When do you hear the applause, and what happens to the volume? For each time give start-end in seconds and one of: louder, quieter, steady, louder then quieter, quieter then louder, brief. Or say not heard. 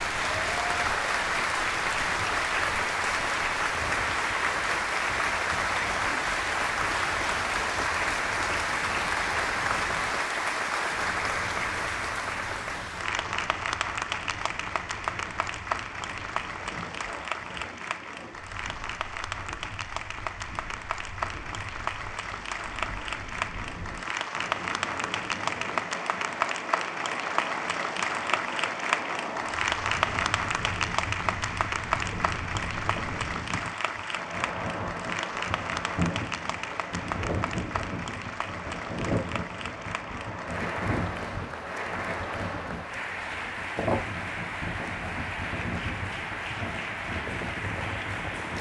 0.0-48.5 quieter.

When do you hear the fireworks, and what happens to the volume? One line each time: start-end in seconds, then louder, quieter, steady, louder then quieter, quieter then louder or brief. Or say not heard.
not heard.